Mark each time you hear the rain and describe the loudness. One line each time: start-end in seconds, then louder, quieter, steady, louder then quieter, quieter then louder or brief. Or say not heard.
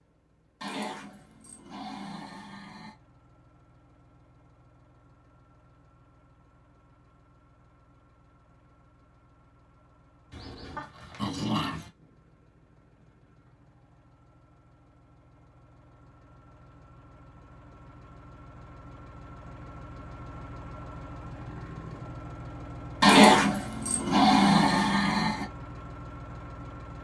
not heard.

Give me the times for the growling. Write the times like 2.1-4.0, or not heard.
0.6-3.0, 10.3-11.9, 23.0-25.4.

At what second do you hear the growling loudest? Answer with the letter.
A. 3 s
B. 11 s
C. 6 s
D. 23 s
D.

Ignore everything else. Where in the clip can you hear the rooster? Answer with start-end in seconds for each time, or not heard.
not heard.